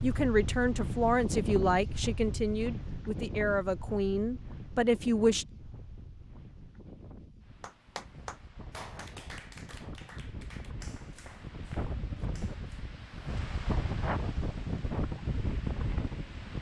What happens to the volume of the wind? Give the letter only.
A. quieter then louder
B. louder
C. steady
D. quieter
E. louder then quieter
A.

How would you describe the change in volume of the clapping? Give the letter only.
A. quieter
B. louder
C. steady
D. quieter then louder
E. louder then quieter
A.